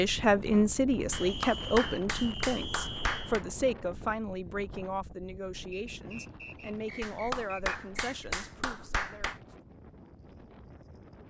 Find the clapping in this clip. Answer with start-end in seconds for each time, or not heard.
1.1-3.5, 7.0-9.4.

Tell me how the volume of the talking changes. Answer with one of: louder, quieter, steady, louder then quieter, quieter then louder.
quieter.